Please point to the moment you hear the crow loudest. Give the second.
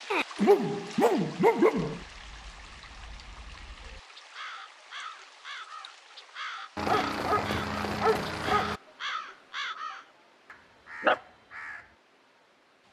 11 s.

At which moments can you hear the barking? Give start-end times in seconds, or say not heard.
0.1-2.0, 6.8-8.8.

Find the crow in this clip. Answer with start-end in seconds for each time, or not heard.
1.9-11.8.